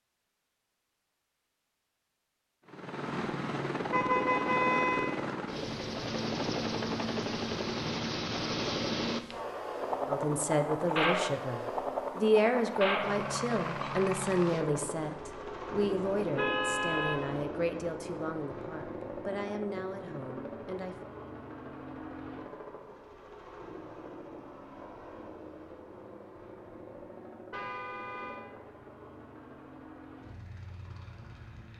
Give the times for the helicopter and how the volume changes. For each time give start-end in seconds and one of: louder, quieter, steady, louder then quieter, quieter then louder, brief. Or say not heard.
2.6-31.7 quieter.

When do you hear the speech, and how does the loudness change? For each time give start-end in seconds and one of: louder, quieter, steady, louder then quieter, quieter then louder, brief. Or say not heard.
10.1-20.9 quieter.